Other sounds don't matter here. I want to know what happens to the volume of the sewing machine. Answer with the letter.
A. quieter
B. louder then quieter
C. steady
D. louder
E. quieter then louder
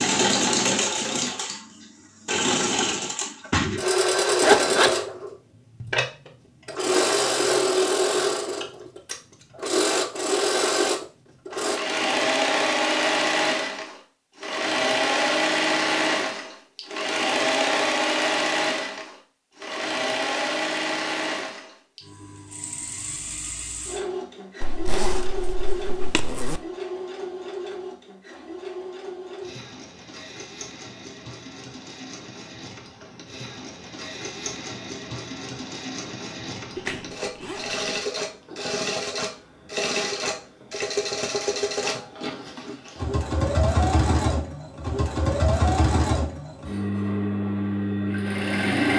E.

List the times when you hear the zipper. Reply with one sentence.
You can hear the zipper from 4.4 to 5.0 s, from 24.6 to 26.6 s and from 36.8 to 37.8 s.